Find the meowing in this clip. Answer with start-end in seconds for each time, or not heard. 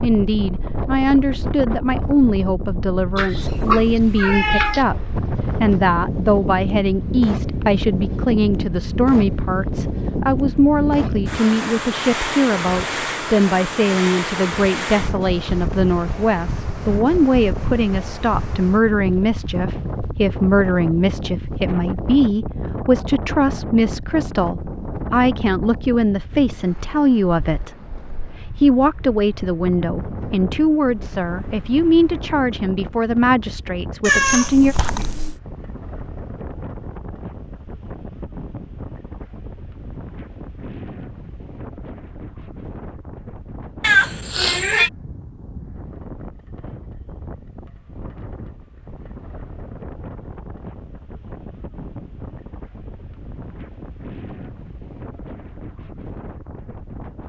3.1-4.8, 34.0-35.4, 43.8-44.9.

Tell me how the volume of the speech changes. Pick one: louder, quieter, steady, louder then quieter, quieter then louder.
steady.